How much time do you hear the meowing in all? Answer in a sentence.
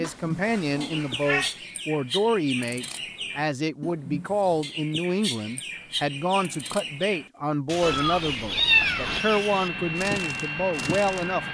You can hear the meowing for 3 seconds altogether.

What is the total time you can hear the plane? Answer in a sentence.
The plane can be heard for 3 seconds in total.